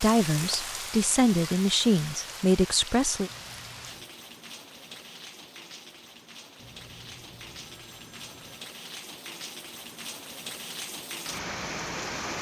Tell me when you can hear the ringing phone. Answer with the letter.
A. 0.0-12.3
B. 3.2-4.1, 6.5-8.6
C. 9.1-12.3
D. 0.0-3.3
B.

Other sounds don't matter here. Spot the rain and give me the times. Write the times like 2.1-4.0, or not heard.
0.0-12.3.